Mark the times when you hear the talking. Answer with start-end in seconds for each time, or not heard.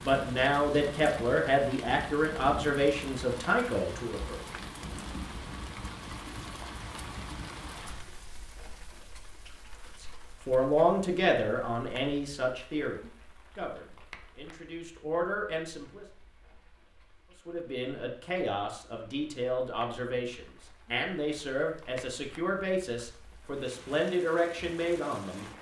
0.0-4.4, 10.0-16.1, 17.4-25.4.